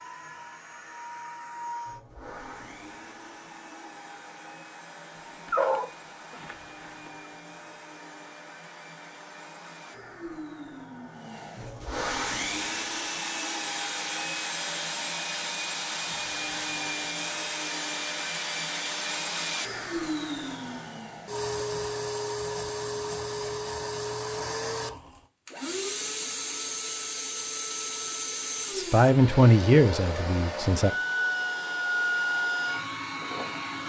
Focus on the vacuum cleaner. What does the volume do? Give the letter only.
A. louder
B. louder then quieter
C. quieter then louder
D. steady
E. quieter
A.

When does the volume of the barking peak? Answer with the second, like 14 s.
6 s.